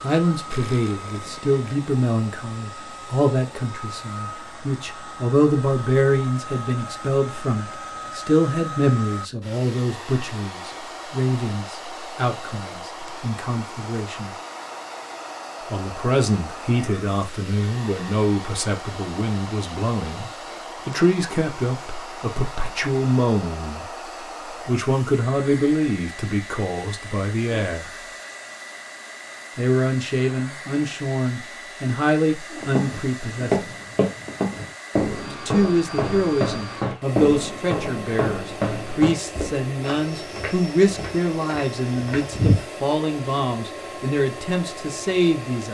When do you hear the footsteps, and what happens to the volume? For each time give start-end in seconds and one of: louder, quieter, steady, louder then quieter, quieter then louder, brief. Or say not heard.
32.6-42.6 quieter.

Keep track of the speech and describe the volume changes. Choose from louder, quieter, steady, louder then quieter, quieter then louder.
steady.